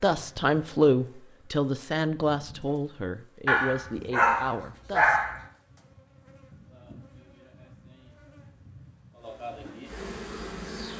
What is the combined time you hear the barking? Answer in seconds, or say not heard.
2 s.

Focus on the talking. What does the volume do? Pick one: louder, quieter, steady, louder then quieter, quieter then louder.
quieter.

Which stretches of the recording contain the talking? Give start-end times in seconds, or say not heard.
0.0-5.2.